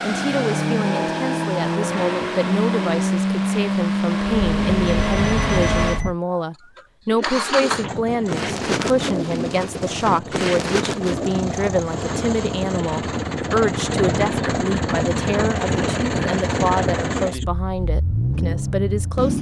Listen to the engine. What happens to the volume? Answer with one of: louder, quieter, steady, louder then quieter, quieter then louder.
quieter then louder.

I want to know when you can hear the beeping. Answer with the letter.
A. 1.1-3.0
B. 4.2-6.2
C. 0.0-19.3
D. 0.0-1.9
B.